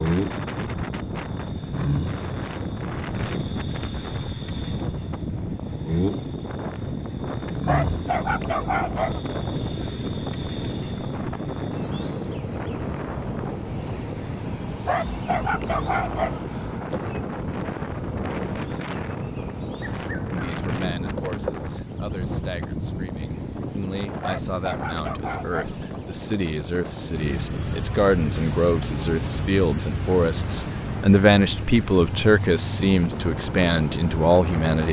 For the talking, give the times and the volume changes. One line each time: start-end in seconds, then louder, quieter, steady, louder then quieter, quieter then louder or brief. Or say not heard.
20.3-34.8 louder.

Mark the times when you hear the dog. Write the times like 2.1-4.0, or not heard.
7.7-9.2, 14.8-16.4, 24.2-25.8.